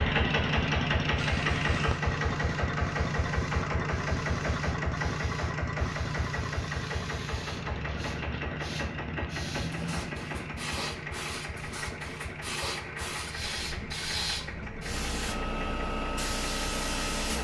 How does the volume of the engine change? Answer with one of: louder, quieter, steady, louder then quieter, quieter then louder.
quieter.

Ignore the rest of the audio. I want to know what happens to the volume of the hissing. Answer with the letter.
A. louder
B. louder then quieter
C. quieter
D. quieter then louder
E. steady
A.